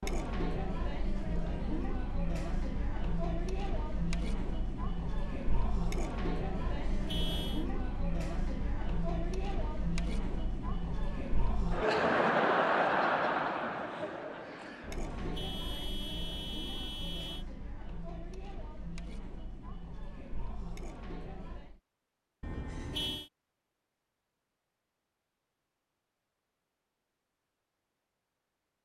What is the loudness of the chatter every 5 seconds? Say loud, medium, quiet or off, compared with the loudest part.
medium, medium, loud, quiet, quiet, off.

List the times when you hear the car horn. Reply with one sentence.
The car horn can be heard from 6.5 to 7.7 s, from 14.9 to 17.4 s and from 22.4 to 23.3 s.